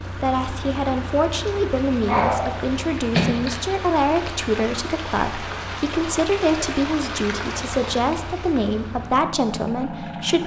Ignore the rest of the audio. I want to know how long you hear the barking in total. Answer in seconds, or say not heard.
2 s.